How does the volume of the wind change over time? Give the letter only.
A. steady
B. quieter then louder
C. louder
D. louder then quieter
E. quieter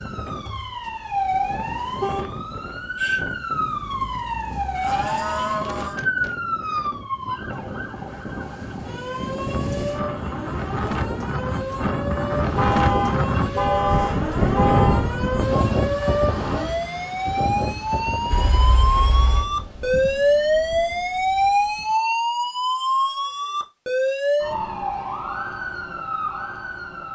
D.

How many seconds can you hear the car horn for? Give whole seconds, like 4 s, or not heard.
5 s.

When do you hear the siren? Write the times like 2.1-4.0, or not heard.
0.0-27.1.